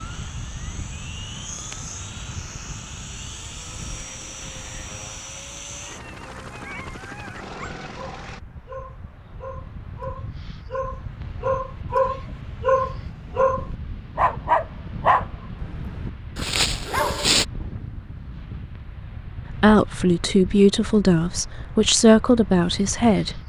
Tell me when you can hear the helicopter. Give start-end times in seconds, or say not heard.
0.0-8.4.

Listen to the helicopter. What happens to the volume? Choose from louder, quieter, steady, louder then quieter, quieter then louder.
steady.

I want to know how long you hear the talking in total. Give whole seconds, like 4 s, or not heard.
4 s.